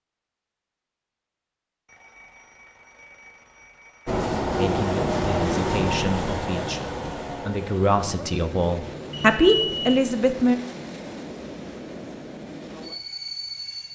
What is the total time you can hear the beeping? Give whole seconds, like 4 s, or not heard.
3 s.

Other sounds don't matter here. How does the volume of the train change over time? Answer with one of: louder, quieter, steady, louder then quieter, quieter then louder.
quieter.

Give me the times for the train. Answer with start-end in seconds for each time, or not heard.
4.0-13.9.